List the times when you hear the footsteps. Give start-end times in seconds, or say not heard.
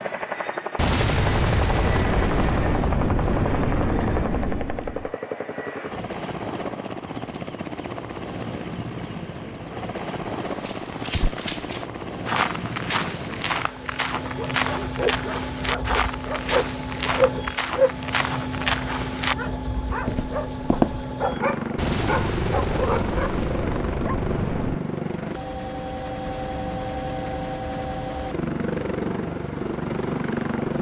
10.2-21.1.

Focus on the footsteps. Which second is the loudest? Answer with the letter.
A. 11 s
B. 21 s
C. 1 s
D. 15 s
B.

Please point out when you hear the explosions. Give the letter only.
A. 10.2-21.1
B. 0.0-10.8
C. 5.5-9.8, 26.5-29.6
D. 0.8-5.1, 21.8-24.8
D.